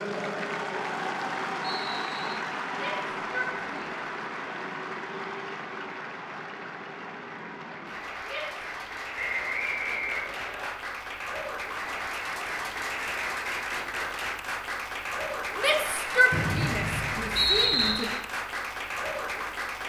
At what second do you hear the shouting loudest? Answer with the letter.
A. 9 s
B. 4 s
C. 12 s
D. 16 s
D.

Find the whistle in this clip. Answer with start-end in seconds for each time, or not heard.
1.8-2.4, 9.2-10.7, 16.3-17.9.